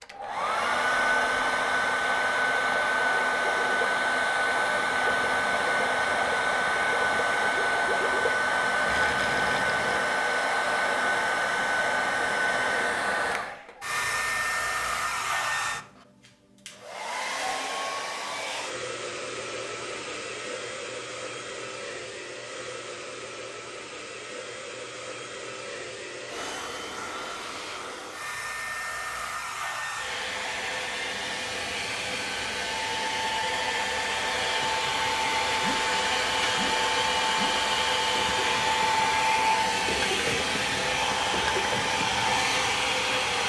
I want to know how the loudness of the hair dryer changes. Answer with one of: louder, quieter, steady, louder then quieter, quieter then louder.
quieter then louder.